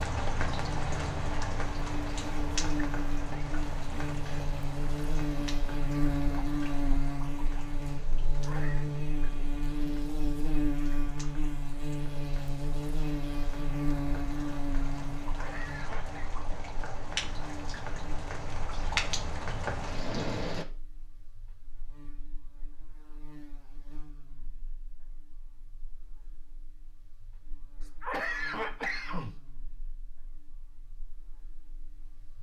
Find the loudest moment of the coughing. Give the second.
28 s.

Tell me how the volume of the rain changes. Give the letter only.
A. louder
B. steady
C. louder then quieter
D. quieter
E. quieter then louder
E.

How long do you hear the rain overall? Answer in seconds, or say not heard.
21 s.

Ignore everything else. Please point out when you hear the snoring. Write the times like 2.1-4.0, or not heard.
not heard.